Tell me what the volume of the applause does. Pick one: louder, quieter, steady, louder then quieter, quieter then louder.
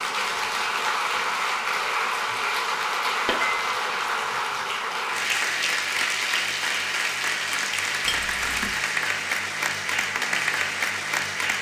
steady.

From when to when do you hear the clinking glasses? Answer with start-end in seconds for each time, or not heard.
3.2-3.7, 8.1-8.8.